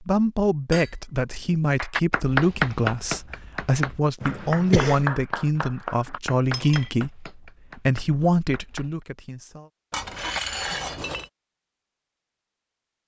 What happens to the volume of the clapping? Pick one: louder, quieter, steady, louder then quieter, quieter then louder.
quieter.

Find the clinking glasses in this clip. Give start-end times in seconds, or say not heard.
0.7-1.6, 6.0-6.9, 9.9-11.3.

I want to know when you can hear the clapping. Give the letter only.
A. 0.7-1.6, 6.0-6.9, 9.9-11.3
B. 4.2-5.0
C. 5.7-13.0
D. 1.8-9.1
D.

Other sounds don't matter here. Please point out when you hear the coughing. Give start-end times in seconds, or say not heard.
4.2-5.0.